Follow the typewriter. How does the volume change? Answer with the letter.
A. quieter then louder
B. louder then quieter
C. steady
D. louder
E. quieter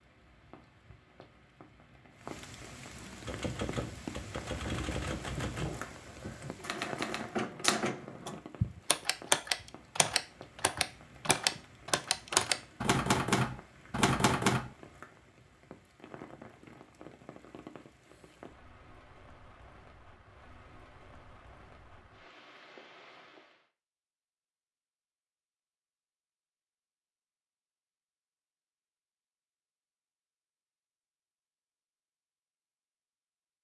D.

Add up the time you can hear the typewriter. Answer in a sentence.
You can hear the typewriter for 12 seconds altogether.